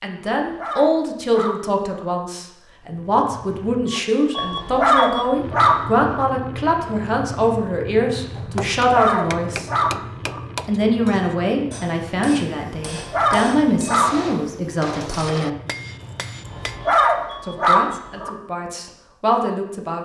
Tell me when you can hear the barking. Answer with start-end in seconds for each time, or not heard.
0.3-2.0, 4.4-6.2, 8.8-10.4, 12.9-14.1, 16.4-18.3.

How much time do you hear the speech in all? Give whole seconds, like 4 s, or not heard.
17 s.